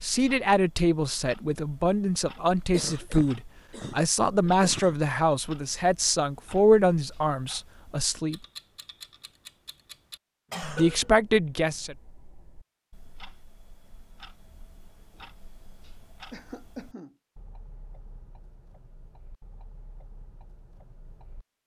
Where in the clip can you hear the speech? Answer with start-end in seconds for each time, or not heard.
0.0-8.4, 10.8-11.9.